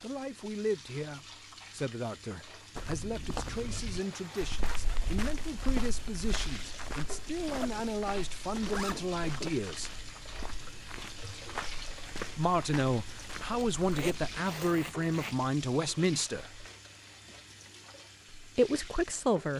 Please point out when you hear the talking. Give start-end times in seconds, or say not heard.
0.0-9.9, 12.3-16.6, 18.4-19.5.